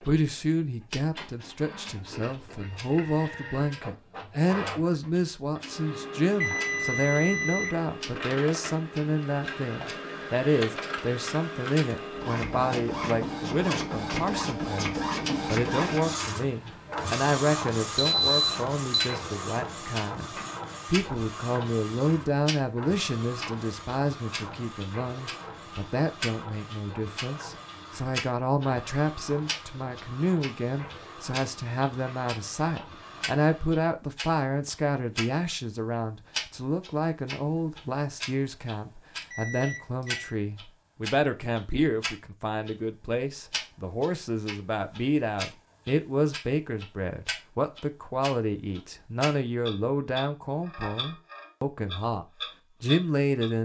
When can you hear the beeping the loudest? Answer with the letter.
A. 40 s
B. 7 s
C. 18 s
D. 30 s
C.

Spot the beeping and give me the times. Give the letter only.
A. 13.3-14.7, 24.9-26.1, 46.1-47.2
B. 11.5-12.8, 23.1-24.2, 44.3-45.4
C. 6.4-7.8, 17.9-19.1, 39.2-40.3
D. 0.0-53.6
C.